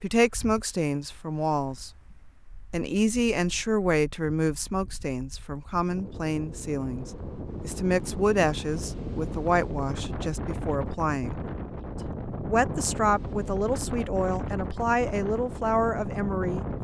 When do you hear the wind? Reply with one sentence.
The wind can be heard from 0.2 to 16.7 s.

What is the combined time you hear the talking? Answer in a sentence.
The talking can be heard for 15 seconds in total.